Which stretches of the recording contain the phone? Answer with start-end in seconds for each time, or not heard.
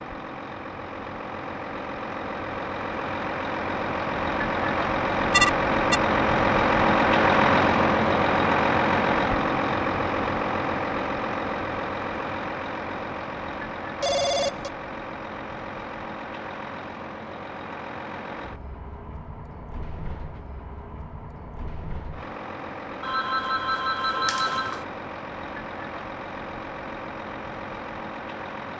5.3-6.0, 14.0-14.7, 23.0-24.9.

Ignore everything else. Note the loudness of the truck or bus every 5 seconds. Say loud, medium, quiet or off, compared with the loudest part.
medium, loud, medium, quiet, quiet, quiet.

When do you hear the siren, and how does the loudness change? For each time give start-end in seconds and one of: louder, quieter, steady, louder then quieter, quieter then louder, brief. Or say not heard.
not heard.